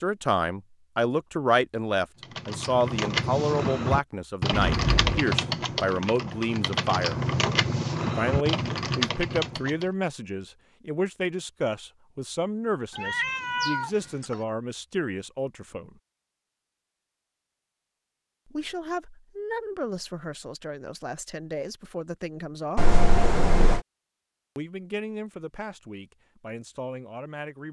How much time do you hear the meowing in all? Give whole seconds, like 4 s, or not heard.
3 s.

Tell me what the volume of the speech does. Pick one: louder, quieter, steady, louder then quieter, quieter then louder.
quieter.